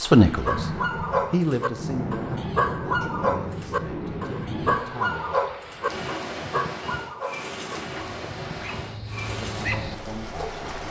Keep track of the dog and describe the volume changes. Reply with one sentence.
The volume of the dog goes down.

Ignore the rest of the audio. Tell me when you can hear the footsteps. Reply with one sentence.
The footsteps can't be heard in this clip.